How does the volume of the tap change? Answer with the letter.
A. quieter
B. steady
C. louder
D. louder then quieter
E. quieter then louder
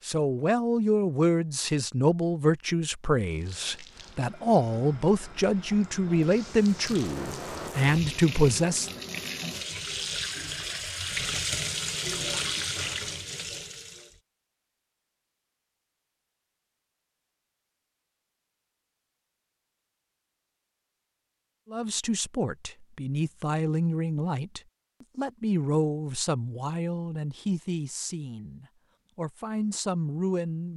C.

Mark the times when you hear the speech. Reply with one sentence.
The speech can be heard from 0.1 to 9.0 s and from 21.7 to 30.7 s.